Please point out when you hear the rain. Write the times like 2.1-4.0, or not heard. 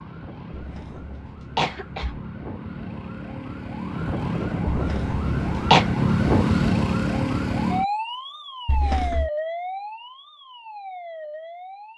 not heard.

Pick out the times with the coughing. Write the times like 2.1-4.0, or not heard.
0.6-2.3, 4.7-5.8, 8.7-9.3.